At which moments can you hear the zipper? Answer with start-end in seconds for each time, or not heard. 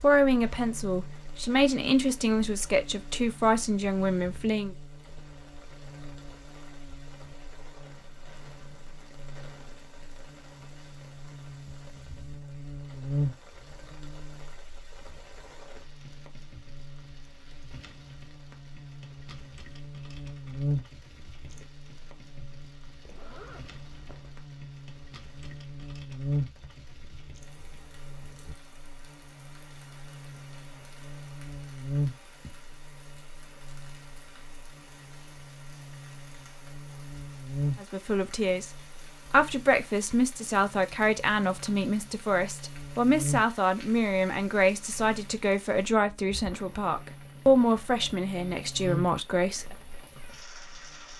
23.1-24.5.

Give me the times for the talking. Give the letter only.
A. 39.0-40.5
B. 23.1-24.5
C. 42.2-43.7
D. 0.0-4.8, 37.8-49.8
D.